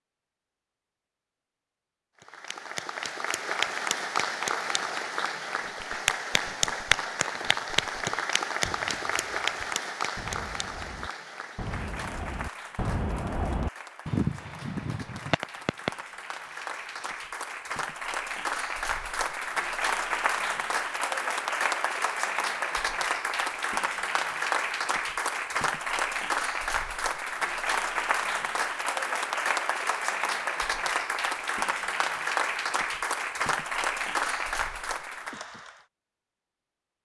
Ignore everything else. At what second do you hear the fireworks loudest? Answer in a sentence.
The volume of the fireworks peaks at 14 seconds.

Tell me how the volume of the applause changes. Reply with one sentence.
The loudness of the applause goes down, then up.